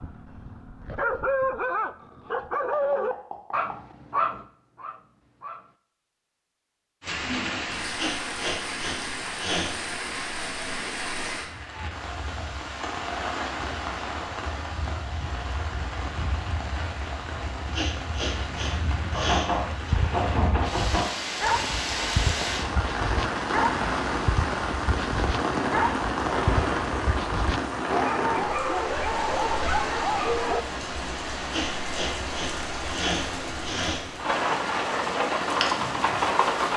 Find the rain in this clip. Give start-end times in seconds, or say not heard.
7.0-36.7.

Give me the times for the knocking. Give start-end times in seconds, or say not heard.
2.3-4.0, 19.1-21.1.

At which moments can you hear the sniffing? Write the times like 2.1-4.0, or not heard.
8.0-9.7, 17.7-19.9, 31.5-34.0.